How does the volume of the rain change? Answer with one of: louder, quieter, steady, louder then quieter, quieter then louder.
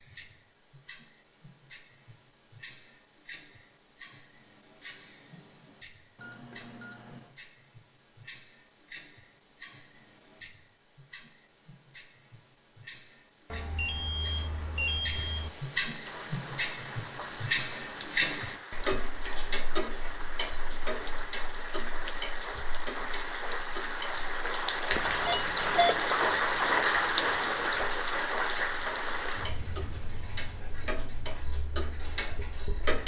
louder then quieter.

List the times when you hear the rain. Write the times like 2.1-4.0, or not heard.
16.1-33.0.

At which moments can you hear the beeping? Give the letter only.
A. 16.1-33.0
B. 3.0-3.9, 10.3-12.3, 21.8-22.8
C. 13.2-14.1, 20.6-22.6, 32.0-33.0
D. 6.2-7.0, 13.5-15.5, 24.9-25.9
D.